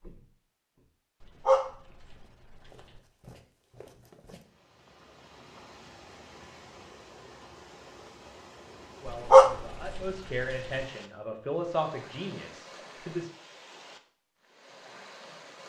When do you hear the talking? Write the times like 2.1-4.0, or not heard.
8.9-13.3.